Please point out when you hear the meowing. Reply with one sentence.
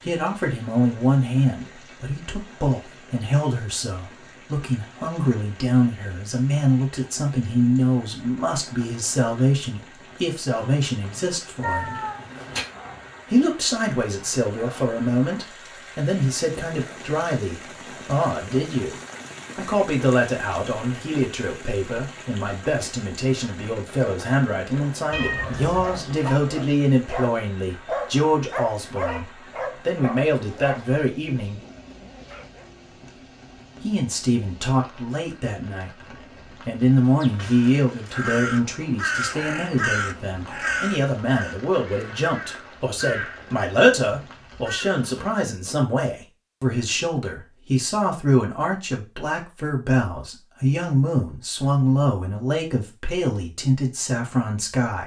The meowing can be heard from 11.6 to 12.7 s, from 25.1 to 26.2 s and from 37.2 to 38.2 s.